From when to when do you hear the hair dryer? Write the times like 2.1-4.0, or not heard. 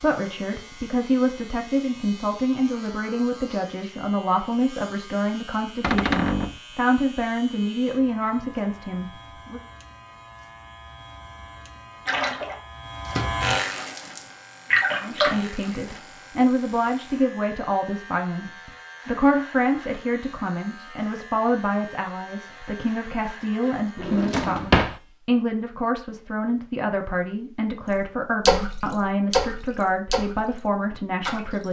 not heard.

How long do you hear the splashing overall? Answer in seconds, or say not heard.
7 s.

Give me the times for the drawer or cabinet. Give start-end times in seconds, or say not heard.
5.8-6.6, 23.9-25.0.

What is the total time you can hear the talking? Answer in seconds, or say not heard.
26 s.